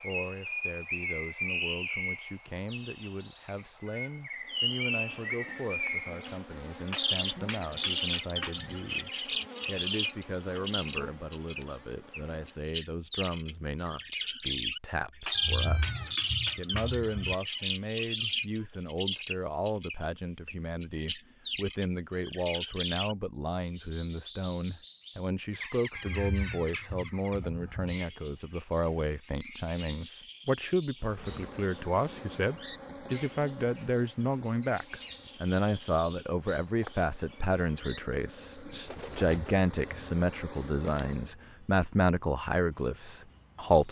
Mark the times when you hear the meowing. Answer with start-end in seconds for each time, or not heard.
15.3-17.4, 25.9-27.9.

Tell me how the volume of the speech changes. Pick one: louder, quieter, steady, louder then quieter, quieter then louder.
louder.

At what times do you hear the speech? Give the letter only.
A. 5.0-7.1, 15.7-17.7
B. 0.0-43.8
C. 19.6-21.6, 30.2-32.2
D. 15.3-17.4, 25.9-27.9
B.